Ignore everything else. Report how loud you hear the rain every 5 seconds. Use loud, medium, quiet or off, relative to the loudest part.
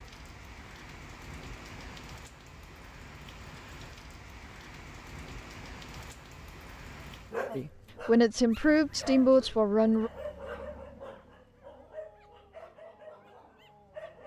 loud, loud, off.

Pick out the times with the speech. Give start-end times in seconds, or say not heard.
7.5-10.1.